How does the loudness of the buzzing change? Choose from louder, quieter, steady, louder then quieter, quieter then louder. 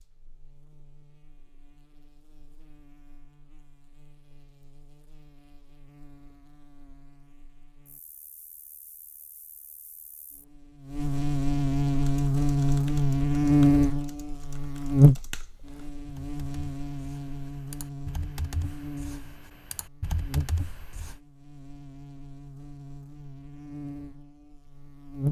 louder then quieter.